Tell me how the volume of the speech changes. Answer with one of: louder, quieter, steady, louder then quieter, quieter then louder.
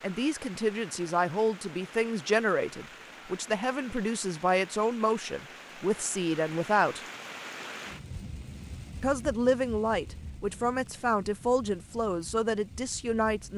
steady.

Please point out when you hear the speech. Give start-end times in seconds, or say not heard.
0.0-7.0, 9.0-13.5.